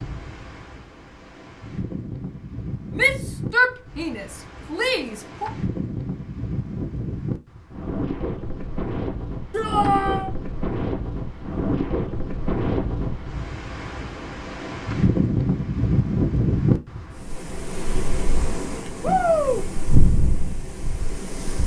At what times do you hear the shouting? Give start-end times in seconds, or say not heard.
3.0-5.5, 9.5-10.3, 19.0-19.6.